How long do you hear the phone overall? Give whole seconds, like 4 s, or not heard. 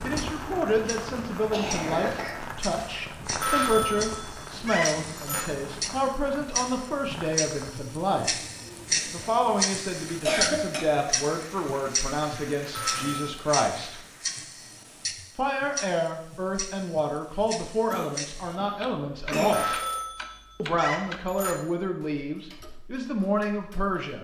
5 s.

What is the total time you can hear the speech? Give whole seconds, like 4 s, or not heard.
21 s.